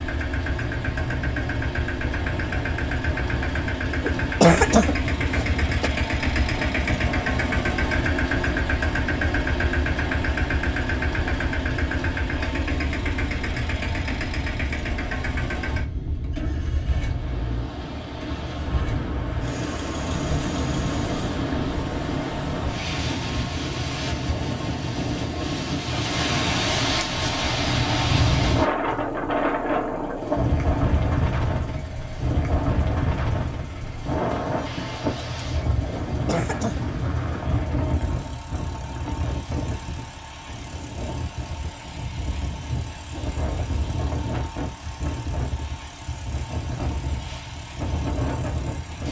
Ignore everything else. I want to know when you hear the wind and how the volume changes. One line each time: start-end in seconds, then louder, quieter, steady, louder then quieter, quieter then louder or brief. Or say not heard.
0.0-49.0 louder then quieter.